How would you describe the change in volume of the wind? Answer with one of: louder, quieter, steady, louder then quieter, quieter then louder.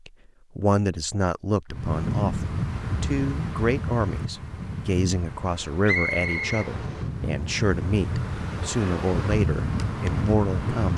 quieter then louder.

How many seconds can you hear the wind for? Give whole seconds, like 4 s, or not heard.
9 s.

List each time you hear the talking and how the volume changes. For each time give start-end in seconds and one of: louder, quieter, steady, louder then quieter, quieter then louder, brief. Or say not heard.
0.1-10.9 steady.